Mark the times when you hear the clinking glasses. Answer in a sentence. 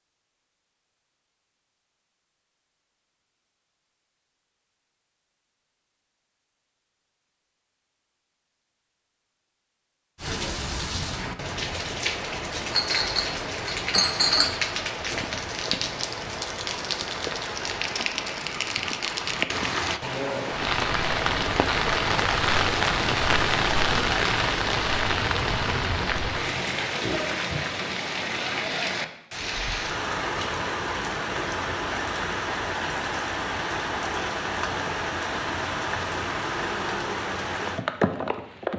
The clinking glasses can be heard from 12.7 to 14.6 s.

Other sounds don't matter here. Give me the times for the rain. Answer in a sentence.
You can hear the rain from 10.2 to 38.7 s.